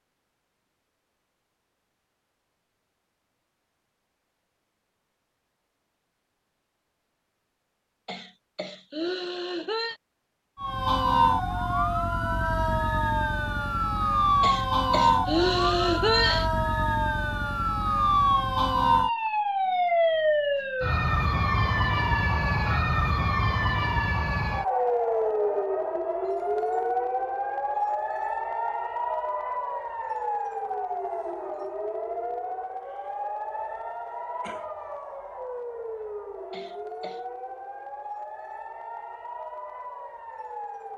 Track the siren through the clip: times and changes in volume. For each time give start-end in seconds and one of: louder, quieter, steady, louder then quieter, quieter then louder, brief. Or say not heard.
10.6-40.9 quieter.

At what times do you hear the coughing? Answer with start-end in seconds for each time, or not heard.
8.1-10.0, 14.4-16.5, 36.5-37.2.